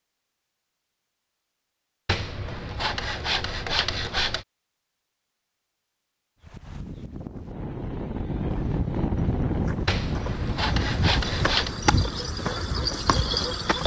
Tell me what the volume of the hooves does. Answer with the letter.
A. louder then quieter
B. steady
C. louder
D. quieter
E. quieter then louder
C.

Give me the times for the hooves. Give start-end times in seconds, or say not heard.
8.5-13.8.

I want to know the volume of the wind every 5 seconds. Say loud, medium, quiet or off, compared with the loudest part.
off, loud, medium.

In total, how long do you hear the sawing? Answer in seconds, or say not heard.
4 s.